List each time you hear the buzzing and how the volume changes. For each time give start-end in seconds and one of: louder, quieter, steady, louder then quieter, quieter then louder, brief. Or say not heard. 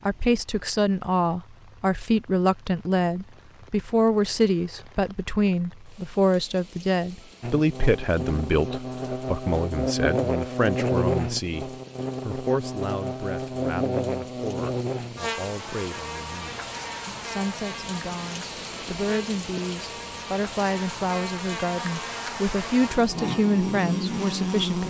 7.4-24.8 quieter then louder.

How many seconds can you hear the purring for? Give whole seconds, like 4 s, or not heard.
not heard.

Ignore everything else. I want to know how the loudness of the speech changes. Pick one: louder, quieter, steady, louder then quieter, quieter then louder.
quieter then louder.